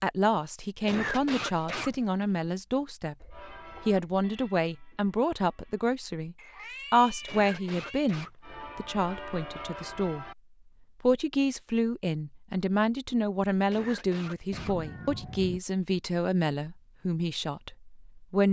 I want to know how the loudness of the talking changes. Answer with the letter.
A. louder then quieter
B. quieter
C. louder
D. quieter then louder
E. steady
E.